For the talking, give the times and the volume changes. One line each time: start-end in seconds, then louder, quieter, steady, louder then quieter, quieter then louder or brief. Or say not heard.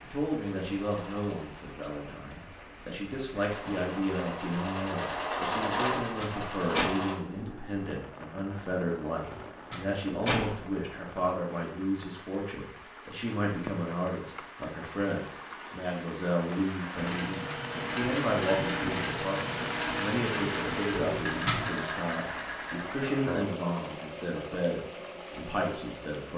0.0-26.3 steady.